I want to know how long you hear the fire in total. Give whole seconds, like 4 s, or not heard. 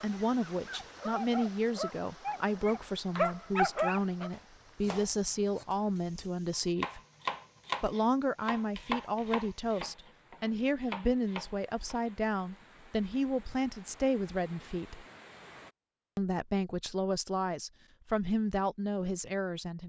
not heard.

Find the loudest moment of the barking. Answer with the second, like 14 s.
4 s.